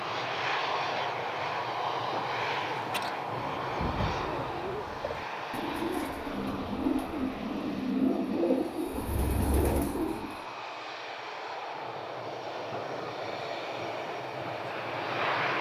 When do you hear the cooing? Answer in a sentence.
The cooing can be heard from 2.6 to 10.4 s.